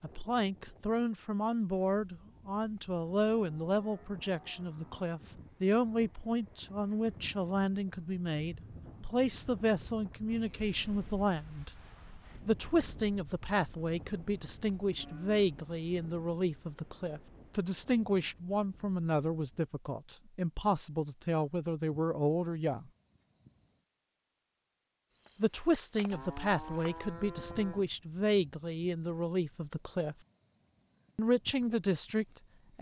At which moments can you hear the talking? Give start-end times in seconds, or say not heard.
0.0-11.7, 12.4-22.9, 25.4-30.1, 31.1-32.7.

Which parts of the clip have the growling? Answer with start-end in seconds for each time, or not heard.
not heard.